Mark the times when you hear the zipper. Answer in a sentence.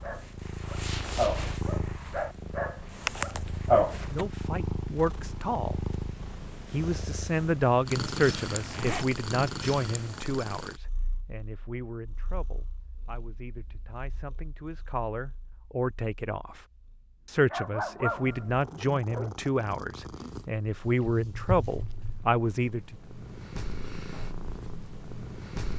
You can hear the zipper from 8.5 to 9.2 s.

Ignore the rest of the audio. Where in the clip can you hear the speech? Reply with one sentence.
You can hear the speech from 4.0 to 5.8 s, from 6.7 to 16.6 s and from 17.2 to 22.9 s.